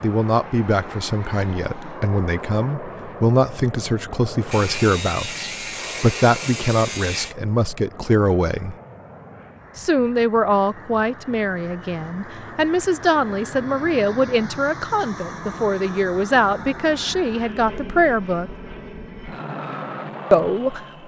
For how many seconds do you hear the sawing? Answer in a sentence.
You can hear the sawing for 3 seconds altogether.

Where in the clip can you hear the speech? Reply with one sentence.
The speech can be heard from 0.0 to 8.8 s, from 9.8 to 18.5 s and from 20.3 to 20.9 s.